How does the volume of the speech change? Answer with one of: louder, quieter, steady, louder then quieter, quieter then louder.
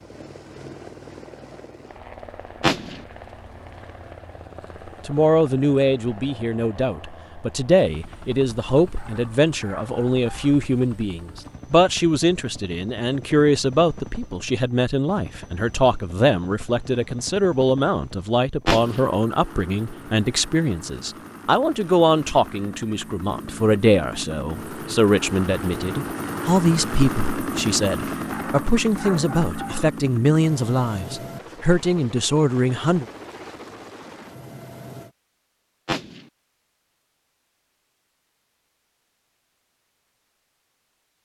steady.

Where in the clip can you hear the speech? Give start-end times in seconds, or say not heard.
5.0-33.0.